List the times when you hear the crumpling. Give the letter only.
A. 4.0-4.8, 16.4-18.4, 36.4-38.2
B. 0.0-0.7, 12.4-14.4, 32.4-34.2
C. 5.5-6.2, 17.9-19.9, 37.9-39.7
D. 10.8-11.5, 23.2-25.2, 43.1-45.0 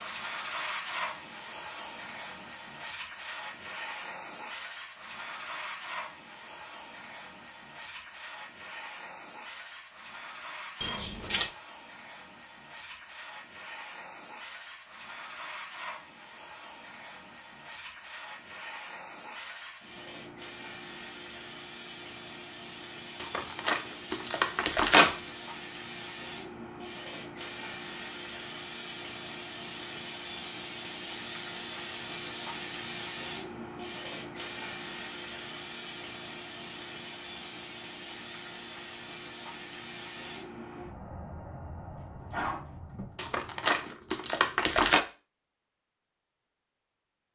D.